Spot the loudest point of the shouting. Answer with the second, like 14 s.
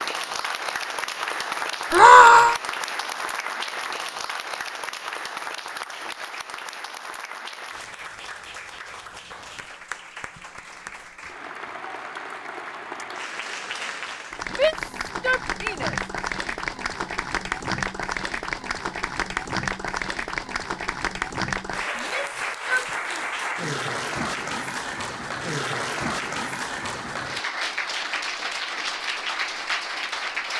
2 s.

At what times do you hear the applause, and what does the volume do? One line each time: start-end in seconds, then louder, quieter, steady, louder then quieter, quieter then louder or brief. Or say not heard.
0.0-30.5 quieter then louder.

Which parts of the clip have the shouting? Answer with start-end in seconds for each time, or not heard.
1.9-2.5, 14.6-15.9, 21.9-23.2.